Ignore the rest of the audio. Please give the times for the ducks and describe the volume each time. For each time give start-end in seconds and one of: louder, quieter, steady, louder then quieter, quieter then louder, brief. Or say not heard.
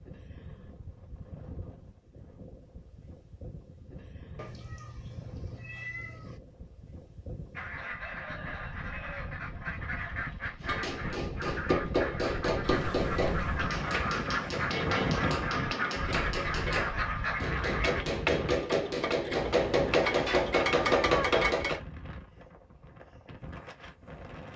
7.5-18.1 louder.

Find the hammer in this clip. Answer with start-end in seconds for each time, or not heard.
10.6-21.8.